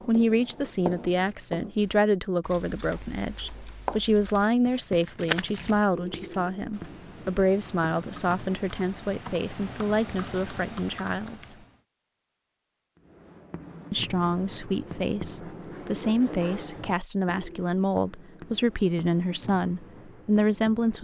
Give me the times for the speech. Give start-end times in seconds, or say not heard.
0.1-11.6, 13.9-20.9.